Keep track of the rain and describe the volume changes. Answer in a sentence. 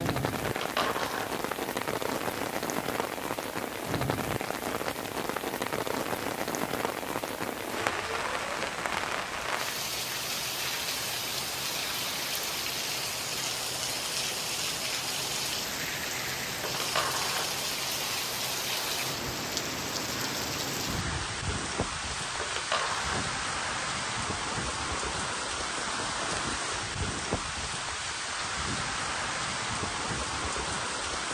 The loudness of the rain stays about the same.